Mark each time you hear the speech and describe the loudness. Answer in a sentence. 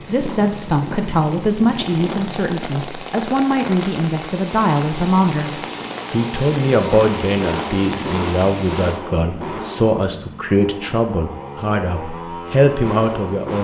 You can hear the speech from 0.1 to 13.6 s, at a steady volume.